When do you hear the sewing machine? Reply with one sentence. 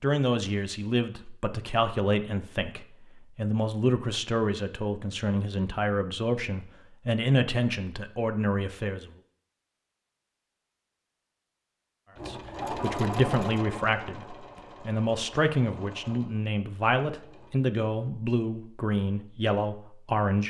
You can hear the sewing machine from 12.2 to 17.6 s.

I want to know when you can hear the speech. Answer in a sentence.
You can hear the speech from 0.0 to 9.1 s and from 12.2 to 20.4 s.